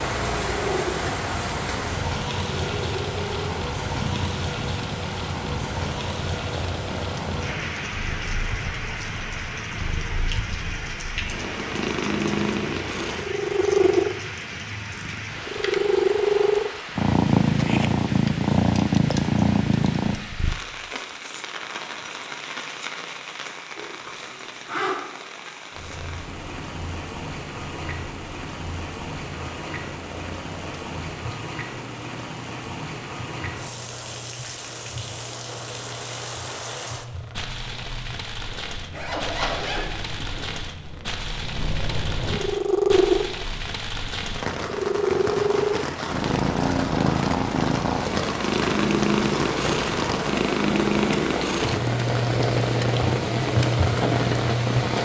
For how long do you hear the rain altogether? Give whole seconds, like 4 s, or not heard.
55 s.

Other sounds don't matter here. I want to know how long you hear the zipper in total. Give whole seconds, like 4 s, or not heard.
3 s.